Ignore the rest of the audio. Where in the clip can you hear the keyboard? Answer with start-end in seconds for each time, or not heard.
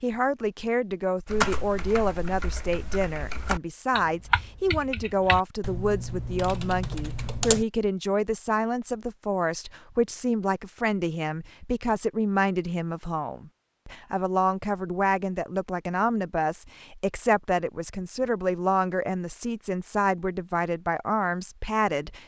1.2-7.7.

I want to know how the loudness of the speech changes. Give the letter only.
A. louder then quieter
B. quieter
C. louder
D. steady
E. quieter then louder
D.